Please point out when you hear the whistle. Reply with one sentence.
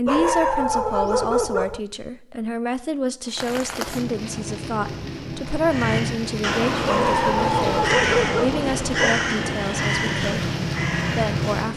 You can't hear the whistle here.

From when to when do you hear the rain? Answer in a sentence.
You can hear the rain from 3.2 to 11.7 s.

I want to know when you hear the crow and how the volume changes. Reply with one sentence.
The crow can be heard from 5.6 to 11.7 s, at a steady volume.